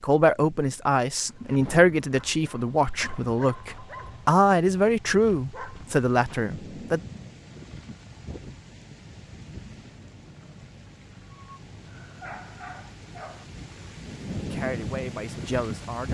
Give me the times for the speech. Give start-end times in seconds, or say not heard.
0.0-7.0, 14.4-16.0.